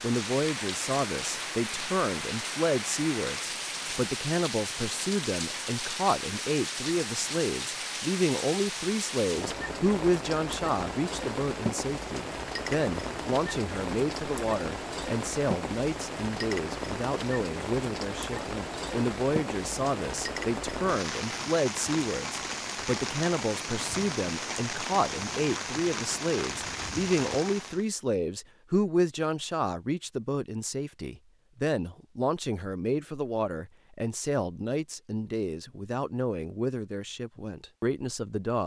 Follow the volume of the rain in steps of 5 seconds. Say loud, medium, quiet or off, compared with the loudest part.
loud, loud, loud, loud, loud, loud, off, off.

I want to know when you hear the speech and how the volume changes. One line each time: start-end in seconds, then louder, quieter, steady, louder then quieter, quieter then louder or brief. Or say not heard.
0.0-38.6 steady.